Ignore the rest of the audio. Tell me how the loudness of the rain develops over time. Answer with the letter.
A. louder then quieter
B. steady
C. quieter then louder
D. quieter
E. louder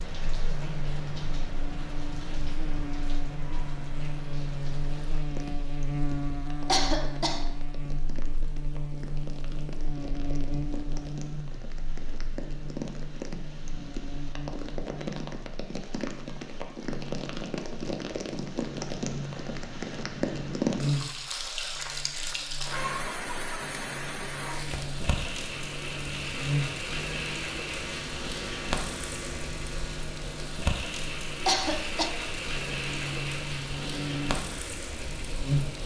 E.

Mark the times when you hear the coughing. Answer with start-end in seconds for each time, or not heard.
6.7-7.5, 31.4-32.1.